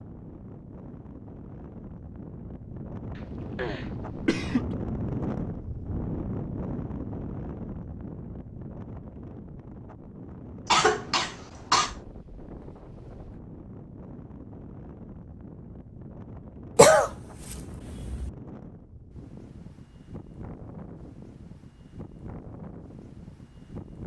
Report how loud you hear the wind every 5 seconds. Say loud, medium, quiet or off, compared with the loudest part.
loud, loud, medium, medium, medium.